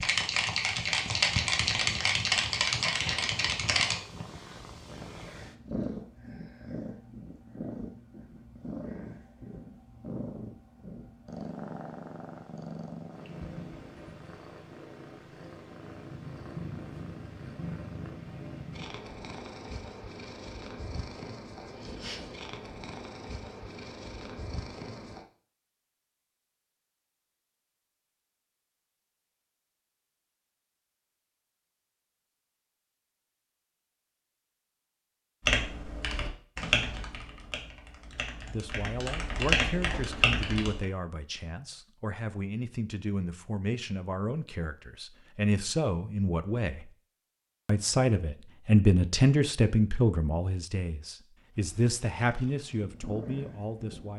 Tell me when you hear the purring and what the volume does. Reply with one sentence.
You can hear the purring from 0.0 to 25.2 s, at a steady volume; and briefly from 51.5 to 54.1 s.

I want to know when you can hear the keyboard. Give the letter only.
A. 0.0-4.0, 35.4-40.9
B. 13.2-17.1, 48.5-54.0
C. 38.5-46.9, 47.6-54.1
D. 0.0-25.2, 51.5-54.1
A.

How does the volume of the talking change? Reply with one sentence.
The loudness of the talking goes up, then down.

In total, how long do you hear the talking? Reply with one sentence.
The talking can be heard for 15 seconds in total.